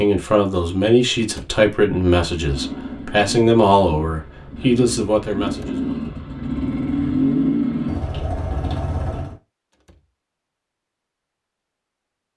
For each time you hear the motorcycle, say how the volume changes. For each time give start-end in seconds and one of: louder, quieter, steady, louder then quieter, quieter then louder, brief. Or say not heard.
2.4-9.3 louder then quieter.